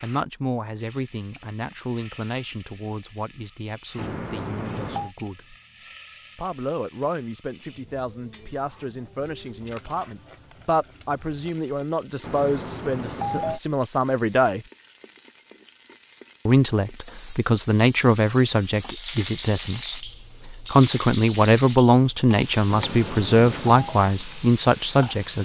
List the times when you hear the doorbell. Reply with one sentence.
You can hear the doorbell from 4.0 to 5.1 s, from 12.2 to 13.6 s and from 22.6 to 23.9 s.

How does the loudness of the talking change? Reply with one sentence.
The loudness of the talking goes up.